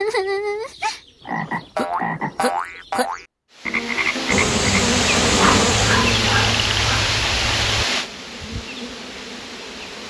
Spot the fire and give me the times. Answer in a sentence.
The fire can't be heard in this clip.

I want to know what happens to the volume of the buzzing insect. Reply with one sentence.
The loudness of the buzzing insect goes down.